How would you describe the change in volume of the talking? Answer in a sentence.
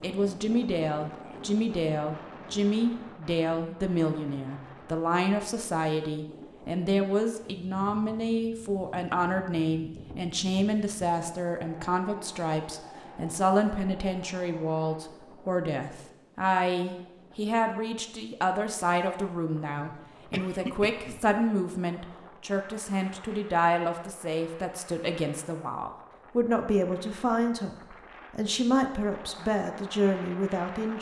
The volume of the talking stays about the same.